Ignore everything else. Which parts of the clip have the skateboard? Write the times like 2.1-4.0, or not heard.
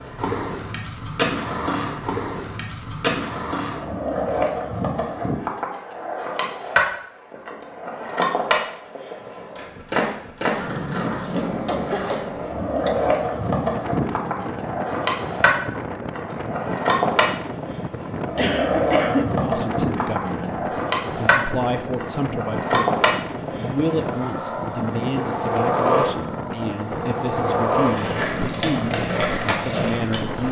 0.0-30.4.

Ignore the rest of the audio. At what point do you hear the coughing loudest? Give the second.
19 s.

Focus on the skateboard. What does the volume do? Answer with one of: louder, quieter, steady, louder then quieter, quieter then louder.
steady.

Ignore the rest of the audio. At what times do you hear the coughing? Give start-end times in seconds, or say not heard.
11.7-13.0, 18.4-20.4.